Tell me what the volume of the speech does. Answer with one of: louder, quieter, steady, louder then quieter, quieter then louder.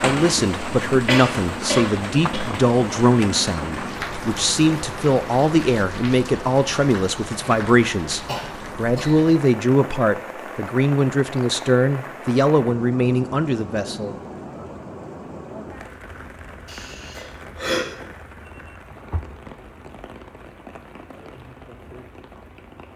steady.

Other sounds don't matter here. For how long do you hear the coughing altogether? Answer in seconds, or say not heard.
4 s.